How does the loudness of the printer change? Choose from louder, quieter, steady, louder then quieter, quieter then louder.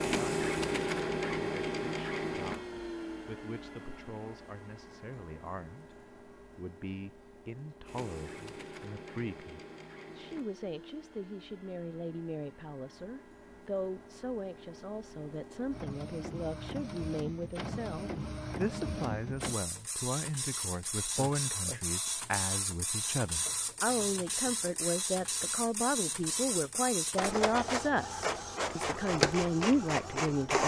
quieter then louder.